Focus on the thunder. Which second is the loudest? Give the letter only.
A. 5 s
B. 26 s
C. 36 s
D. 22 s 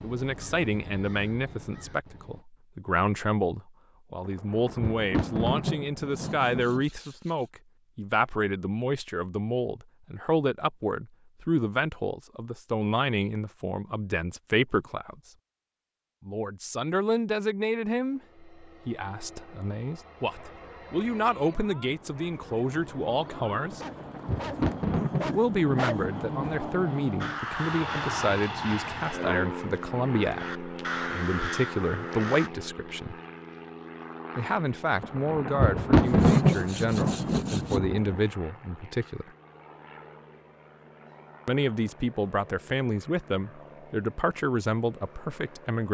C.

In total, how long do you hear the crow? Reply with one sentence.
You can hear the crow for 8 seconds altogether.